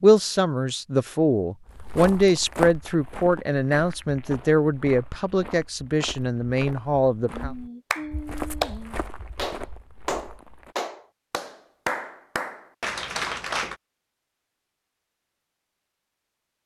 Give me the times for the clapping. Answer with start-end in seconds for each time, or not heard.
7.3-13.8.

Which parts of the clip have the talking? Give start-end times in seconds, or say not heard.
0.0-7.5.